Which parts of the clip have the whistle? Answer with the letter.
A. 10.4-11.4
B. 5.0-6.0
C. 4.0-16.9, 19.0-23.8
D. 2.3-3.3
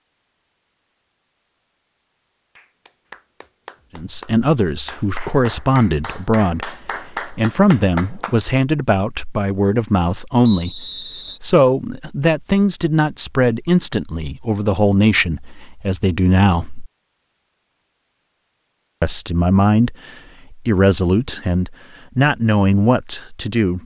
A.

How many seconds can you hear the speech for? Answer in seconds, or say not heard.
18 s.